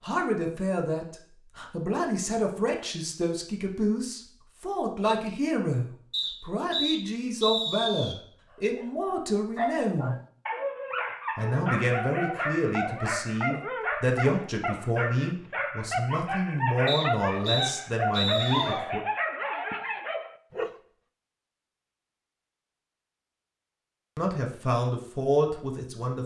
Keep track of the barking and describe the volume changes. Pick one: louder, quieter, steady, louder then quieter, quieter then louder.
steady.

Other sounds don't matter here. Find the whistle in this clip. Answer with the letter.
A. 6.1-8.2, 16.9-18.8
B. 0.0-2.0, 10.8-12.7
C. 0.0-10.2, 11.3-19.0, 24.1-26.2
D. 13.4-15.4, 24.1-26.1
A.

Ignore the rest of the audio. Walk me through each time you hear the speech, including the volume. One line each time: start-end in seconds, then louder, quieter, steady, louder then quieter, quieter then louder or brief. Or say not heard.
0.0-10.2 steady
11.3-19.0 steady
24.1-26.2 brief.